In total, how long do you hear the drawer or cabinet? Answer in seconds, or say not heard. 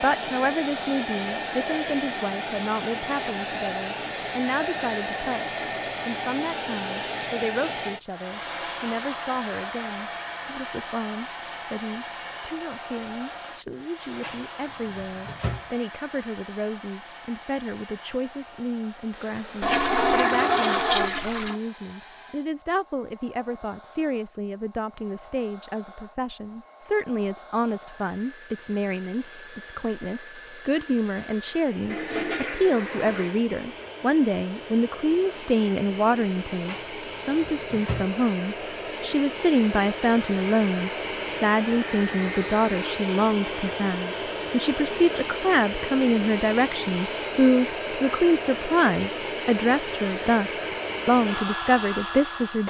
3 s.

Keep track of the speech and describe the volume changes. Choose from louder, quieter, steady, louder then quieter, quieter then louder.
louder.